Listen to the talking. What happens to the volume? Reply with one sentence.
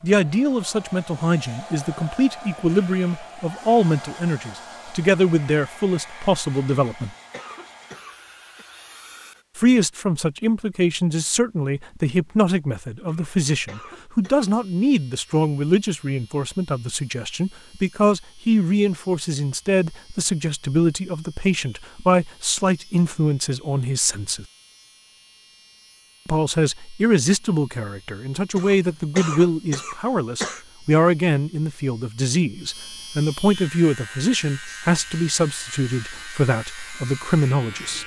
The volume of the talking stays about the same.